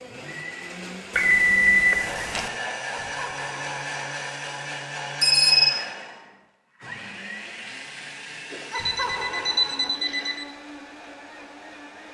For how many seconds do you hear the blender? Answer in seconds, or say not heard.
12 s.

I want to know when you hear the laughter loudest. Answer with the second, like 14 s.
9 s.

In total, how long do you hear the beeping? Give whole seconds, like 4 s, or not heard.
4 s.